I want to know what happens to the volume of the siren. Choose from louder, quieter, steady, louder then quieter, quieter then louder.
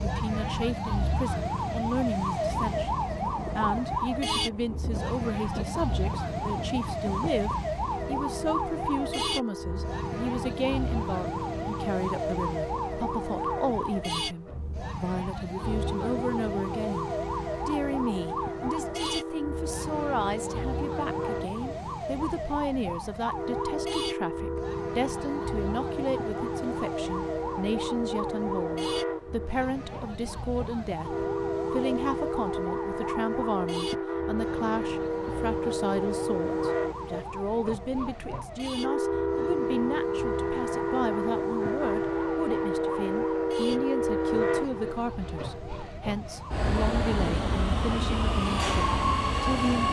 quieter.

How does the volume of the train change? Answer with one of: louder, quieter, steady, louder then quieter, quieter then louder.
louder.